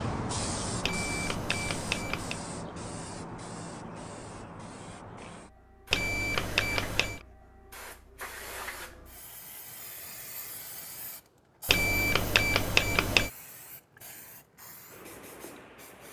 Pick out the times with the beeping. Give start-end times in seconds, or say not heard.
0.8-2.4, 5.9-7.2, 11.7-13.3.